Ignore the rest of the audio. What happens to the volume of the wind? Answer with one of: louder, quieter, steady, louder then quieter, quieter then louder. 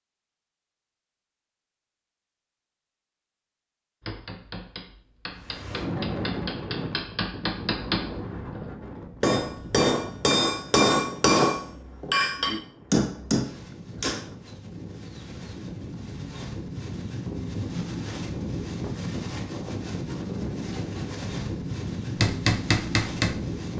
quieter then louder.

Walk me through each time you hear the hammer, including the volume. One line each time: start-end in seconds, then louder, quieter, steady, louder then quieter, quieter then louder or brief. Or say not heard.
4.0-14.3 louder
22.2-23.4 brief.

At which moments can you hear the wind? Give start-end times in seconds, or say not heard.
5.3-23.7.